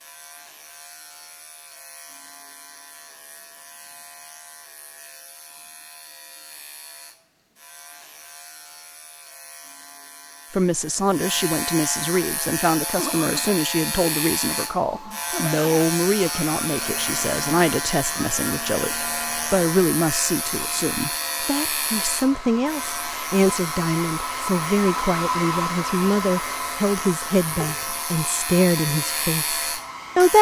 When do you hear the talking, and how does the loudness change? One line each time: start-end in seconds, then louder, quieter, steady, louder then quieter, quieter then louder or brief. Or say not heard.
10.5-30.3 steady.